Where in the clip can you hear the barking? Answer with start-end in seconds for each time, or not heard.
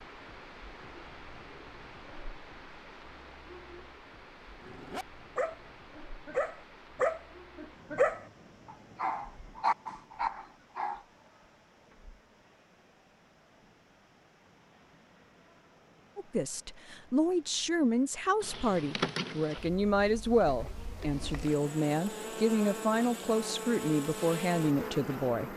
4.6-11.0.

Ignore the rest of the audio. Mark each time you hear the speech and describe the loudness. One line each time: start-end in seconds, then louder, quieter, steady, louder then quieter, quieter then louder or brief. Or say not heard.
16.1-25.5 steady.